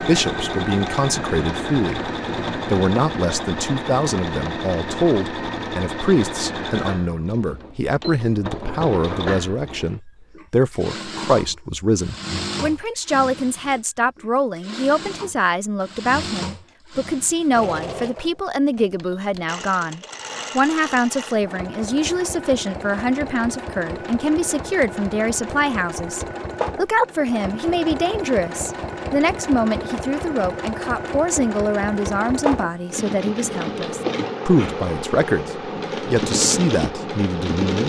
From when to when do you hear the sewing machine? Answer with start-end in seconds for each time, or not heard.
0.0-37.8.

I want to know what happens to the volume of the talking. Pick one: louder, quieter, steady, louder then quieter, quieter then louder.
steady.